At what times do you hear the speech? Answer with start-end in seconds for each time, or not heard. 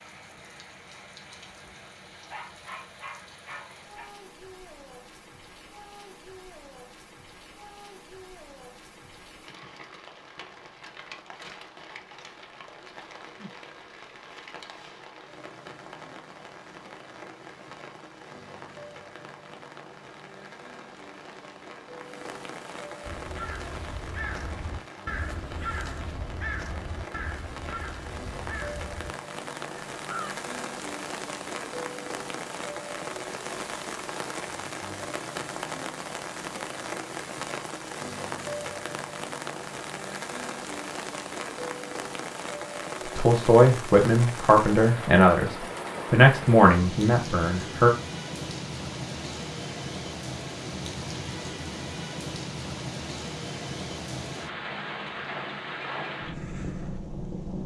43.1-47.9.